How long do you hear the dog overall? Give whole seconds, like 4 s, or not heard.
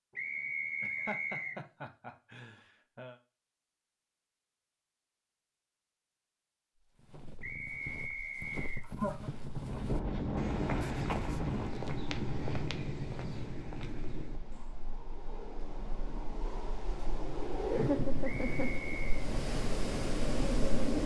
not heard.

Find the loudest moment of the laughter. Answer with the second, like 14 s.
18 s.